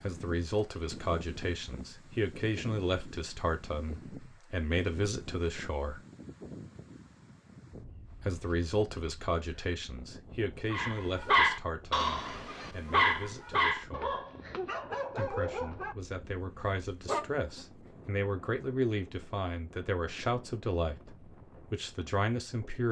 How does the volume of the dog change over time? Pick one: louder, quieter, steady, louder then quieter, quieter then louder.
quieter.